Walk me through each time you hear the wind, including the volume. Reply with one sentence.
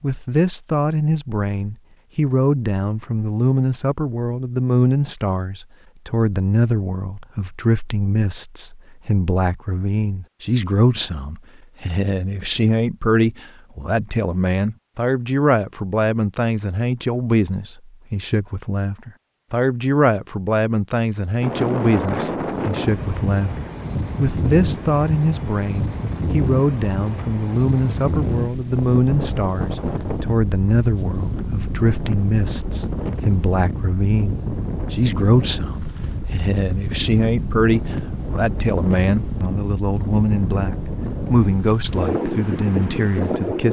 The wind can be heard from 21.4 to 43.6 s, at a steady volume.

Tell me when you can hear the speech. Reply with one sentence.
The speech can be heard from 0.0 to 43.6 s.